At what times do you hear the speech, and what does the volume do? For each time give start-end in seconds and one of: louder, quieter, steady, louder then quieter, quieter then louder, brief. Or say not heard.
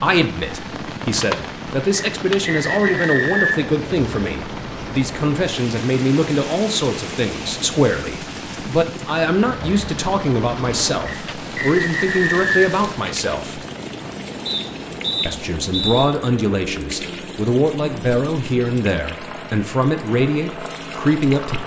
0.0-13.6 steady
15.2-21.6 steady.